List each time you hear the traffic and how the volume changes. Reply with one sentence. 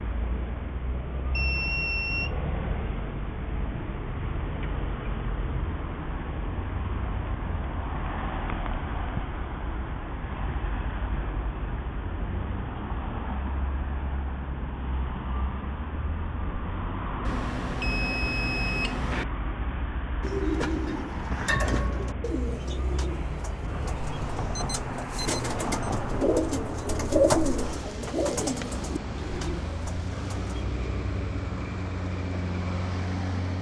You can hear the traffic from 0.0 to 33.5 s, at a steady volume.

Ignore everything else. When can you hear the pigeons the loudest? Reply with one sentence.
The volume of the pigeons peaks at 27 seconds.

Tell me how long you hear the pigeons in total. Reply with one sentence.
The pigeons can be heard for 10 seconds in total.